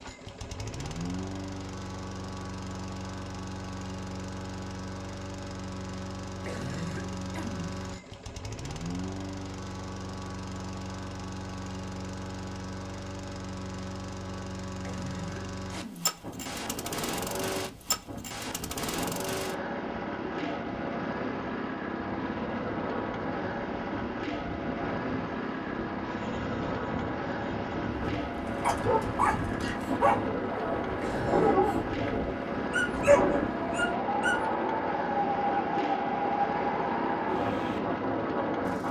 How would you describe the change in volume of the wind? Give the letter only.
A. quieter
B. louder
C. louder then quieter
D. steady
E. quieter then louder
B.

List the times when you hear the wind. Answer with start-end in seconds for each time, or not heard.
16.1-38.8.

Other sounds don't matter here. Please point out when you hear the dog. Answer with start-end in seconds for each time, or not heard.
28.6-34.5.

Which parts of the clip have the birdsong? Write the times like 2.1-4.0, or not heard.
not heard.